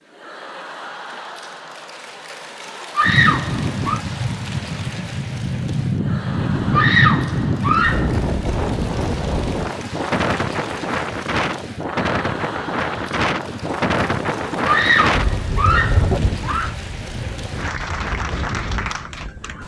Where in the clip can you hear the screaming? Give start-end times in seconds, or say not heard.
3.0-4.0, 6.7-8.1, 14.7-16.8.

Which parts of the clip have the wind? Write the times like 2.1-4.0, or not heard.
3.0-19.6.